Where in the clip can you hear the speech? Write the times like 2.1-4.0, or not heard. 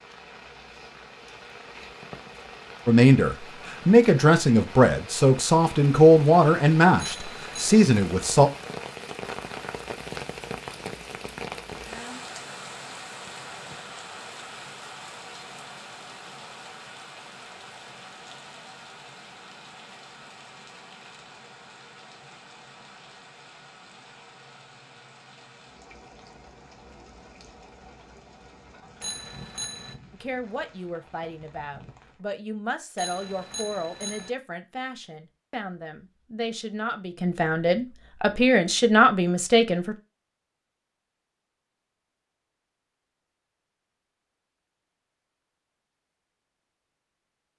2.9-8.5, 30.1-40.0.